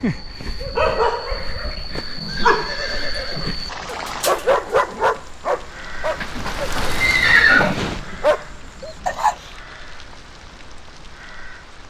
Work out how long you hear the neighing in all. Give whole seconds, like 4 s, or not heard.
4 s.